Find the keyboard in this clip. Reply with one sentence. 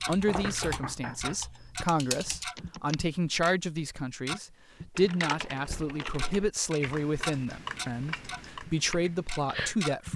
The keyboard can be heard from 0.0 to 3.0 s and from 5.0 to 9.8 s.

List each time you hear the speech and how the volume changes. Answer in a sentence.
You can hear the speech from 0.1 to 10.1 s, at a steady volume.